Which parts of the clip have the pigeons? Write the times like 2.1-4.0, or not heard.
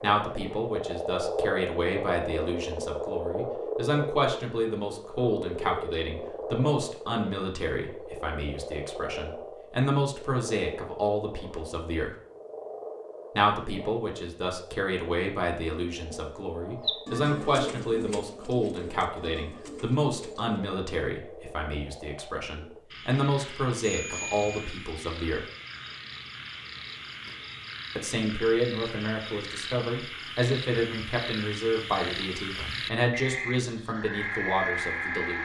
16.8-20.6.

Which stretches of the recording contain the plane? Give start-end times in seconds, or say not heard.
not heard.